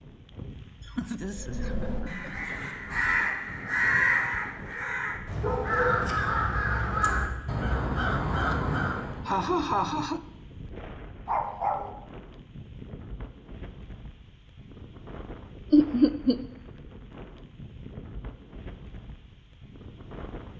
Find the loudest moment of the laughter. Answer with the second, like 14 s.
16 s.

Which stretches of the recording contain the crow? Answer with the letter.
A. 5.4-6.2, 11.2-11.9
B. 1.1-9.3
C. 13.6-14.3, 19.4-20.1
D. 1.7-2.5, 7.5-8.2
B.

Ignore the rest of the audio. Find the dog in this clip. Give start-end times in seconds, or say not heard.
5.4-6.2, 11.2-11.9.